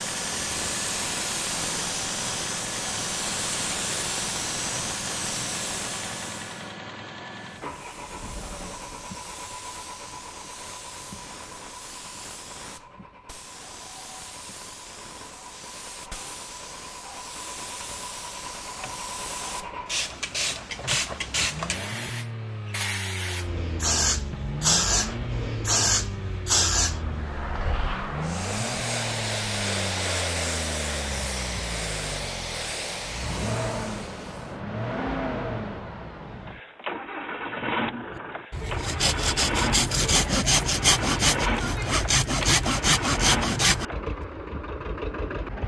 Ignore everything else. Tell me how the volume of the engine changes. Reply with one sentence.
The volume of the engine goes down, then up.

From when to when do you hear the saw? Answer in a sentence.
You can hear the saw from 38.1 to 43.9 s.